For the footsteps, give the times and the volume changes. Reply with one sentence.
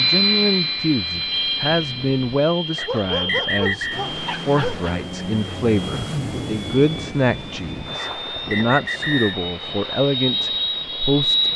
The footsteps can't be heard in this clip.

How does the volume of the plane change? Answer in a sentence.
The volume of the plane goes down, then up.